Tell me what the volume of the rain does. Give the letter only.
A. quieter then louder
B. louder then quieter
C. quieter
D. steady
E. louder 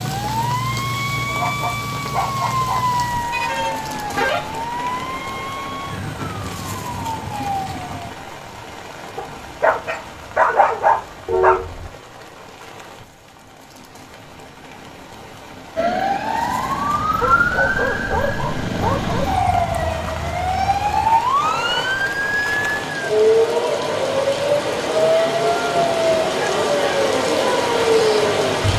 A.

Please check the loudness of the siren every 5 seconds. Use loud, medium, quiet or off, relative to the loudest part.
medium, medium, off, loud, loud, loud.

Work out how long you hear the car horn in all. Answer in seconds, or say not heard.
2 s.